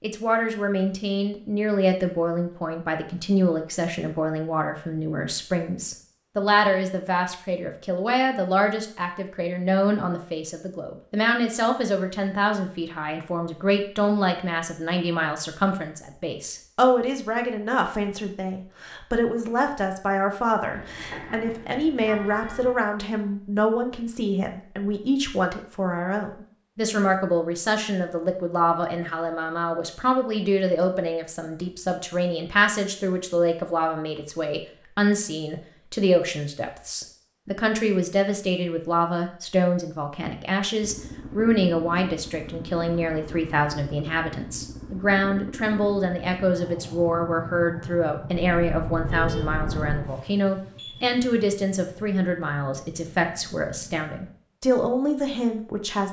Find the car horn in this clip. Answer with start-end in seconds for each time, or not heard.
20.7-22.8, 48.5-50.1.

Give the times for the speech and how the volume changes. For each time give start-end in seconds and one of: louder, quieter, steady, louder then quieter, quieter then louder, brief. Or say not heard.
0.0-56.0 steady.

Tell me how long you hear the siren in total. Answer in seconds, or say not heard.
not heard.